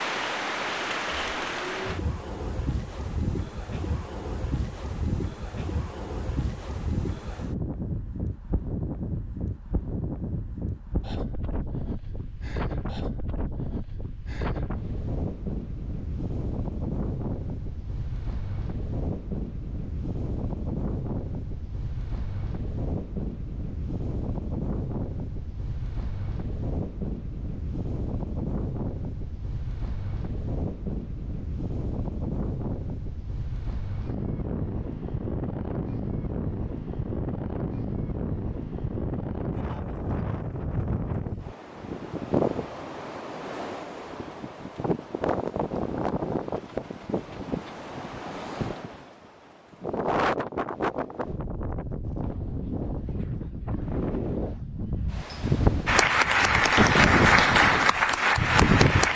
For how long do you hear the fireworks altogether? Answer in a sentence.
You can't hear the fireworks here.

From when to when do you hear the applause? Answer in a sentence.
You can hear the applause from 55.9 to 59.1 s.